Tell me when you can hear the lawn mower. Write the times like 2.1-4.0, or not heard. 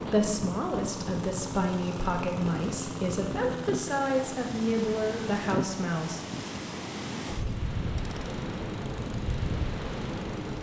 0.0-10.5.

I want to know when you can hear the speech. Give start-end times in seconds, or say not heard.
0.0-6.2.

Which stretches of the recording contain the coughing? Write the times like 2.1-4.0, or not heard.
not heard.